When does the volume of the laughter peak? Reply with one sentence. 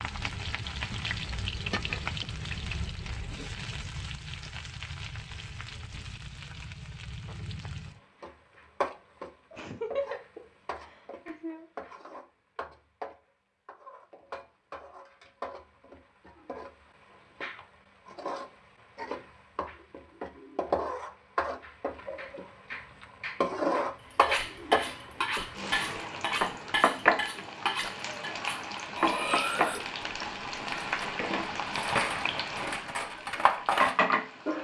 The volume of the laughter peaks at 10 seconds.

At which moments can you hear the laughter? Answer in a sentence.
The laughter can be heard from 9.5 to 11.9 s.